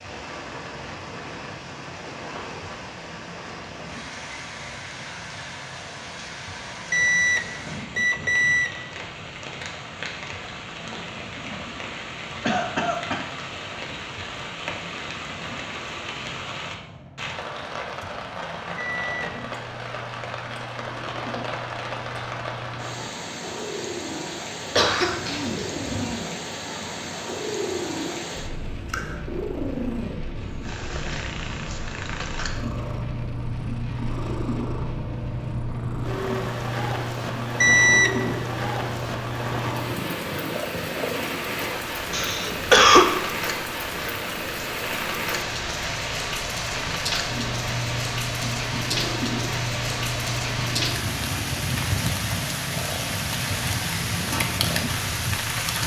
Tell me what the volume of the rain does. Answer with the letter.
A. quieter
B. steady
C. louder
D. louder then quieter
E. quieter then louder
C.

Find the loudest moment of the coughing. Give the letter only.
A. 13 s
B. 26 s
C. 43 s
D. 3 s
C.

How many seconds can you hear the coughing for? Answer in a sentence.
You can hear the coughing for 3 seconds altogether.